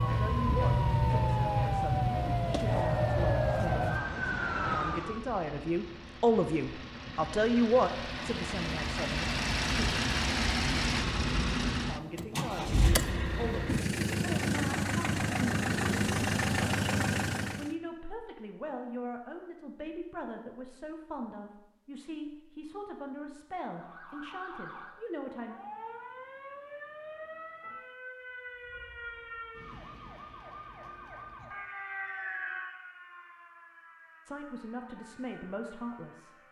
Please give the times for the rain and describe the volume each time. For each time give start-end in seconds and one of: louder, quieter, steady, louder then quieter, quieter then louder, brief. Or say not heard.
not heard.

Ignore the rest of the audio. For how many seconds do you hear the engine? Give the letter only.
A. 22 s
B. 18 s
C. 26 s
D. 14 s
B.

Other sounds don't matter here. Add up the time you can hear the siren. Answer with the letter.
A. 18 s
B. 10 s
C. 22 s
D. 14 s
A.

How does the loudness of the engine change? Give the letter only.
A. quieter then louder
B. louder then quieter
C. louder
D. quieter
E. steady
C.